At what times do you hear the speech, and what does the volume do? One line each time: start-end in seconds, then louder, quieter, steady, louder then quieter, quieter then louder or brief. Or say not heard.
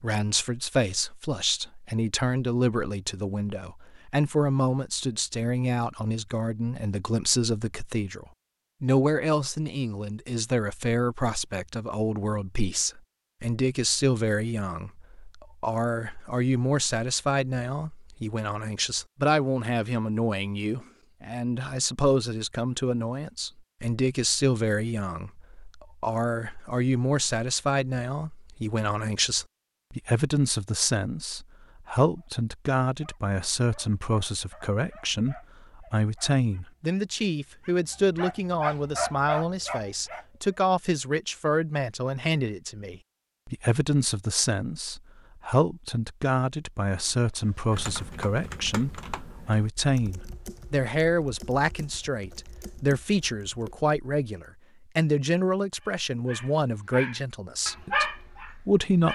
0.0-59.0 steady.